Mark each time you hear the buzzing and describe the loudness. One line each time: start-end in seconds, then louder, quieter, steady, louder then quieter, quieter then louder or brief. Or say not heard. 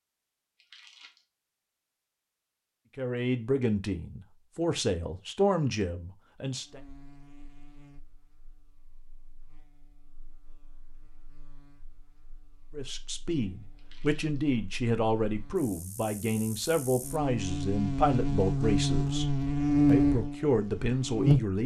6.6-21.6 quieter then louder.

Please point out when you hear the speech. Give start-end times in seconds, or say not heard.
3.0-6.8, 12.7-21.6.